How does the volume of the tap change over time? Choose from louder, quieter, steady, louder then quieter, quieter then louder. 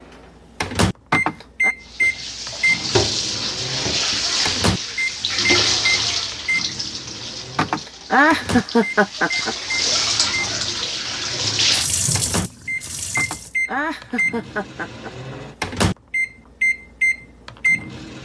quieter then louder.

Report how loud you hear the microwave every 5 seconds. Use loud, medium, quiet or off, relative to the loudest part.
loud, medium, medium, loud.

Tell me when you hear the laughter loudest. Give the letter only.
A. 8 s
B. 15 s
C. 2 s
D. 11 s
A.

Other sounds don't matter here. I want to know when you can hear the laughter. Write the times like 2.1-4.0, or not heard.
1.1-1.7, 7.5-9.8, 13.2-15.4.